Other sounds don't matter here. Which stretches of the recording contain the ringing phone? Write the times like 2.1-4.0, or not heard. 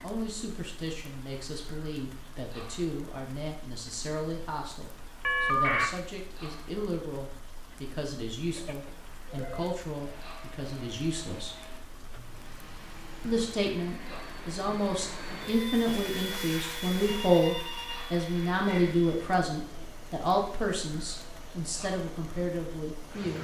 5.2-5.9, 8.6-9.8, 17.0-18.9.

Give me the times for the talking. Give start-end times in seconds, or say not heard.
0.0-11.7, 13.2-23.4.